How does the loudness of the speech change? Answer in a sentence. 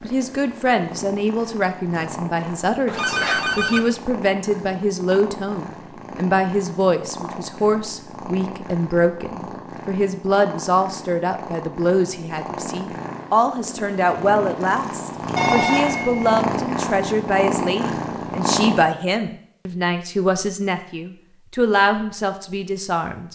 The loudness of the speech stays about the same.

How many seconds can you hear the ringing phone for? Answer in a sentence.
The ringing phone can be heard for 2 seconds in total.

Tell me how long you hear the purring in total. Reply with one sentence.
You can hear the purring for 19 seconds altogether.